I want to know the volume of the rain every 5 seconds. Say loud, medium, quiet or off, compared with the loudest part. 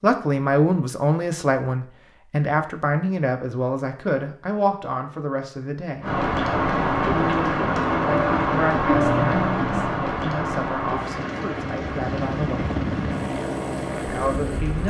off, loud, medium.